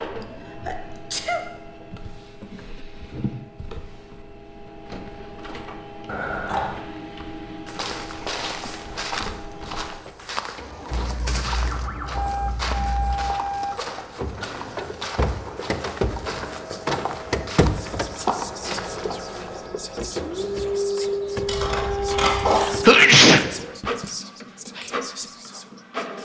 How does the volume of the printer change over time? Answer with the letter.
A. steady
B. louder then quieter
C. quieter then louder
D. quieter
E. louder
E.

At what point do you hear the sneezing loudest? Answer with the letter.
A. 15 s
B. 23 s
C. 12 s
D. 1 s
B.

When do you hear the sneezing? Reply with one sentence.
You can hear the sneezing from 0.2 to 1.4 s and from 22.4 to 24.1 s.